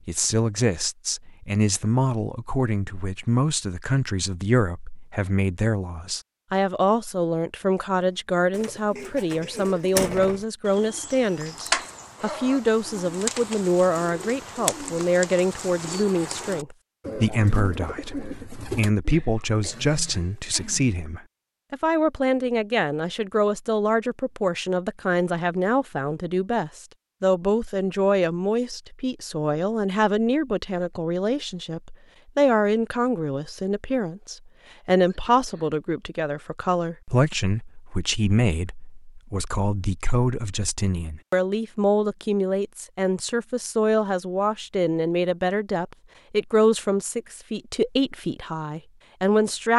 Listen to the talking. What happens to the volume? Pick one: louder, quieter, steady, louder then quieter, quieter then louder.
steady.